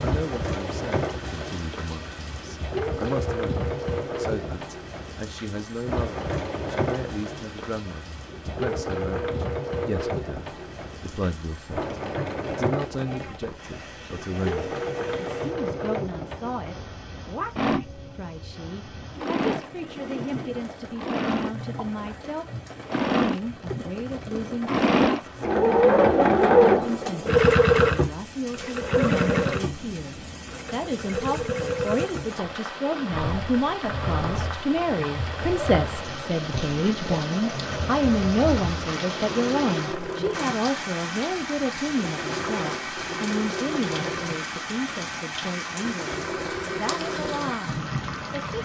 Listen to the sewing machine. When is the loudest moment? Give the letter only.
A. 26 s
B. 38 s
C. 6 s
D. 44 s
A.